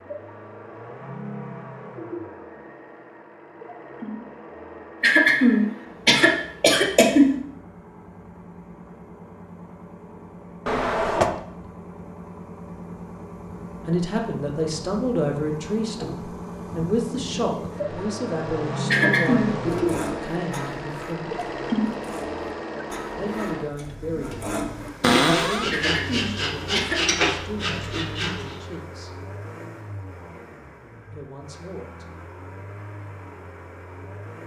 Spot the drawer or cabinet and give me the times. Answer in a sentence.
The drawer or cabinet can be heard from 10.7 to 11.3 s and from 25.0 to 25.7 s.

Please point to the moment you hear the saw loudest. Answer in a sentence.
The loudest moment of the saw is at 27 seconds.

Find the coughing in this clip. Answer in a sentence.
You can hear the coughing from 5.0 to 7.3 s, from 18.9 to 19.6 s and from 25.7 to 27.0 s.